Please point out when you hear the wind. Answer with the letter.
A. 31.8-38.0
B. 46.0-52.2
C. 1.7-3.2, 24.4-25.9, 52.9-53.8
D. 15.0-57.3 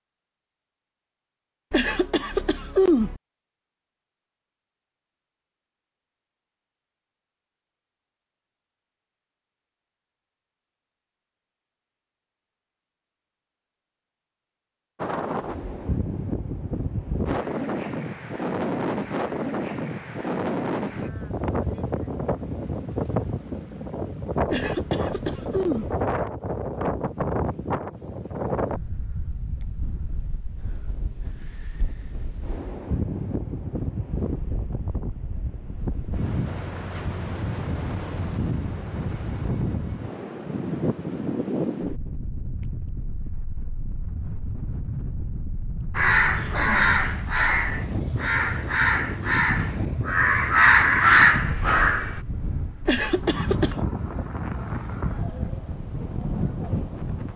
D.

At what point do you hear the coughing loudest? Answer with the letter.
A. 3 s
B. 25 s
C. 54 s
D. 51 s
A.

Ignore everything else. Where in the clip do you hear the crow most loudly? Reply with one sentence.
The loudest moment of the crow is at 51 seconds.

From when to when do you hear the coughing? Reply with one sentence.
You can hear the coughing from 1.7 to 3.2 s, from 24.4 to 25.9 s and from 52.9 to 53.8 s.